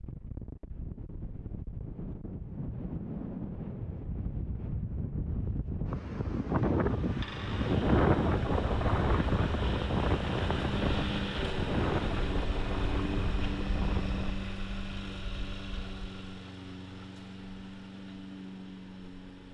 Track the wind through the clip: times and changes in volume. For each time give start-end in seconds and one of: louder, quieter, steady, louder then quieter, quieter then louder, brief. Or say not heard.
0.0-14.3 louder then quieter.